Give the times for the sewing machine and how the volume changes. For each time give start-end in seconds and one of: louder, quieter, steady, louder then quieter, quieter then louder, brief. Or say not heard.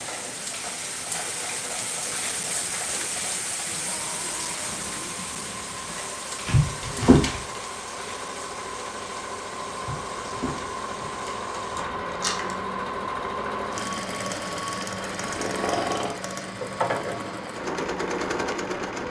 0.0-19.0 louder.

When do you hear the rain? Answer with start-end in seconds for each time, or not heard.
0.0-19.0.